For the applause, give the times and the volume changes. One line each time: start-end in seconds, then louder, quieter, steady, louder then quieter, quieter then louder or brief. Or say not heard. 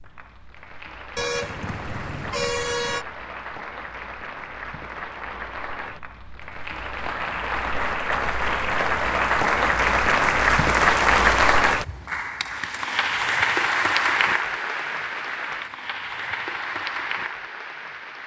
0.0-18.2 louder then quieter.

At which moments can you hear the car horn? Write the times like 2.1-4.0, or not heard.
1.1-3.0.